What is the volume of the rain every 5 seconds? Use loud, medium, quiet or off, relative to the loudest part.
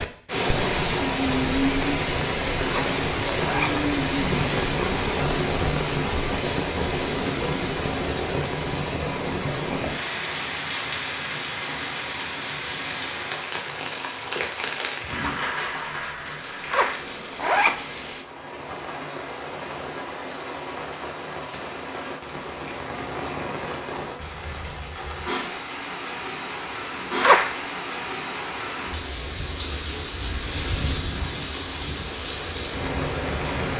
loud, loud, medium, medium, medium, medium, medium.